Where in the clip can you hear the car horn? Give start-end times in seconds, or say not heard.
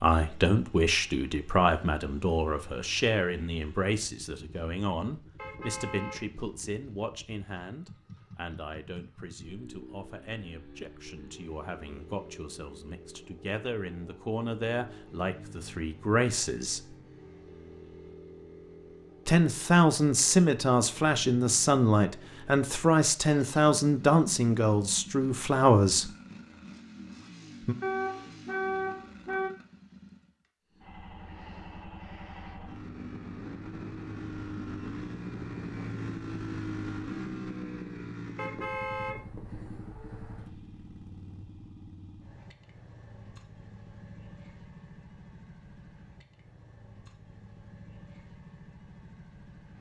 5.3-6.6, 27.8-29.5, 38.4-39.5.